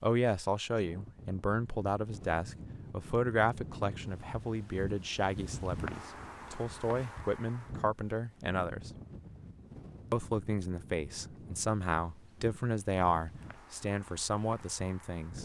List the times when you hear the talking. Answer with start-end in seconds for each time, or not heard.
0.0-8.9, 10.1-15.4.